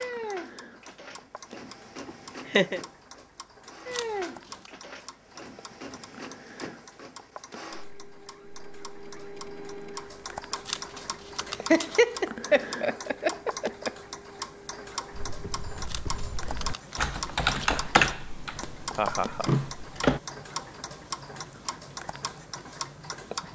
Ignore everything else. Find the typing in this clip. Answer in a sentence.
The typing can be heard from 15.1 to 20.2 s.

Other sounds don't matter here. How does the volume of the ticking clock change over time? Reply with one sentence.
The loudness of the ticking clock goes up.